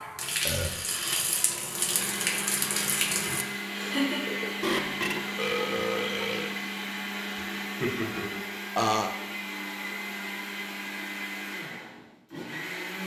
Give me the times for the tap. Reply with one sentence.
The tap can be heard from 0.0 to 3.5 s.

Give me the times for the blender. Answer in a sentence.
The blender can be heard from 1.9 to 13.0 s.